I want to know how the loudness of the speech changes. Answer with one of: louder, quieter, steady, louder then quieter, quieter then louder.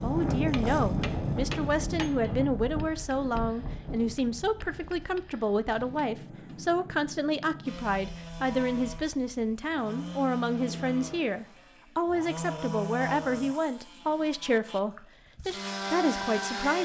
steady.